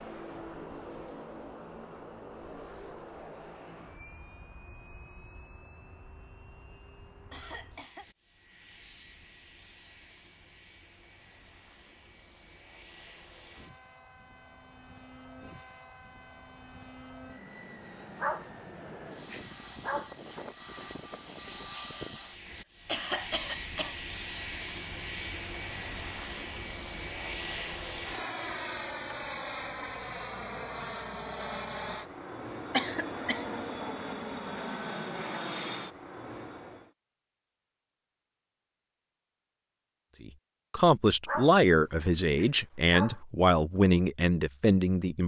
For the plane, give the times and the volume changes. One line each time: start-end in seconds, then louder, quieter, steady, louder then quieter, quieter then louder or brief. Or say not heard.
0.0-36.9 quieter then louder.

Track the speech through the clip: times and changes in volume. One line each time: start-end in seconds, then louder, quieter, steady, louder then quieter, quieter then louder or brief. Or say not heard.
40.2-45.2 steady.